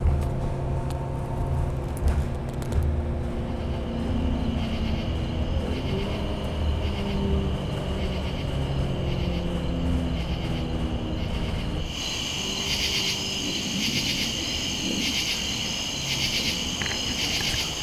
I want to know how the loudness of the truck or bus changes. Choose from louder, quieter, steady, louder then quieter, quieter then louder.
quieter.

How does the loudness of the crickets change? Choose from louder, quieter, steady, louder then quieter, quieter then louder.
louder.